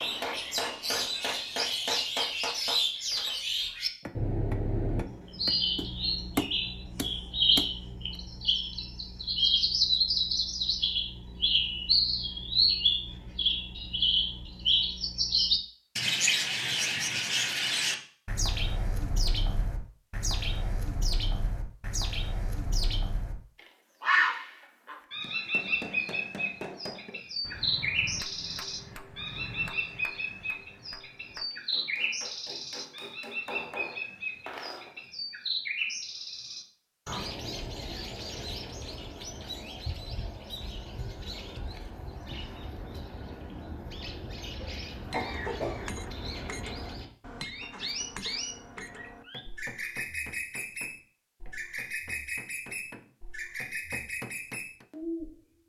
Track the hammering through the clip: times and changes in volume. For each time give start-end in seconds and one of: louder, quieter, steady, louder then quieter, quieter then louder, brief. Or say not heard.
0.0-7.8 quieter then louder
25.2-35.0 quieter then louder
45.0-54.9 quieter then louder.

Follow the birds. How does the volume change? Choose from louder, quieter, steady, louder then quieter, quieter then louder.
quieter.